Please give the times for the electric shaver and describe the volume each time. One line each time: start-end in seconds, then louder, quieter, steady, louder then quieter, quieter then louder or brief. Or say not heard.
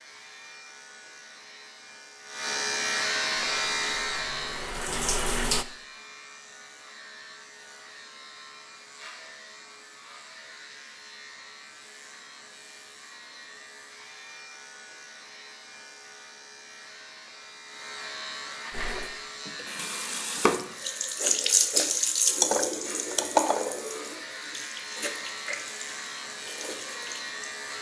0.0-27.7 quieter then louder.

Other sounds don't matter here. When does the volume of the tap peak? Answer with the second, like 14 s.
22 s.